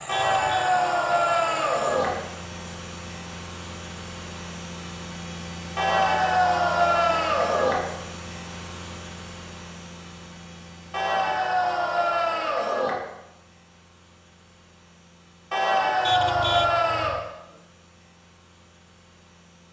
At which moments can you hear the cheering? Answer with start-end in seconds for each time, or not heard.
0.1-2.1, 5.8-7.8, 10.9-12.9, 15.5-17.2.